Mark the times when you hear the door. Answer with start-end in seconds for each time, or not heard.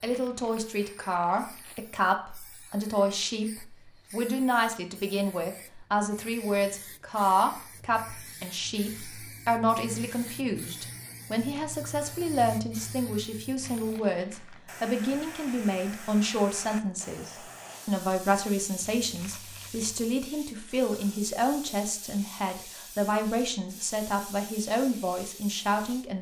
not heard.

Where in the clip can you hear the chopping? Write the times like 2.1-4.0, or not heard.
not heard.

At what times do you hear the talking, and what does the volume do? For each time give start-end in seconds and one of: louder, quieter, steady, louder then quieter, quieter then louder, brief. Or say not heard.
0.0-26.1 steady.